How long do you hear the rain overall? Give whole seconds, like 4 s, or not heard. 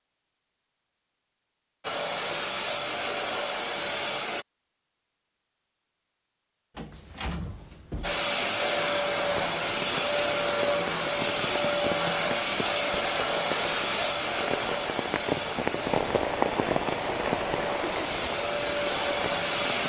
11 s.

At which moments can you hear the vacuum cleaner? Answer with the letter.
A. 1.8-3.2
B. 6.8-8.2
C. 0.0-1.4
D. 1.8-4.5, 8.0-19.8
D.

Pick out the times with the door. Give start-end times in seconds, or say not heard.
6.8-8.2.